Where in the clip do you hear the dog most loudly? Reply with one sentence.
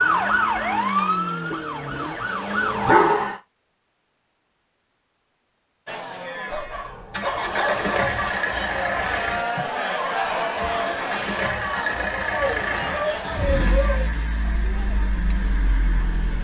The volume of the dog peaks at 3 seconds.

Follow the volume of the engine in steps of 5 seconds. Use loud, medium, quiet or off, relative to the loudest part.
medium, loud, loud, medium.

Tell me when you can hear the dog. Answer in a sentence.
You can hear the dog from 1.5 to 3.4 s, from 6.5 to 8.3 s and from 12.5 to 14.1 s.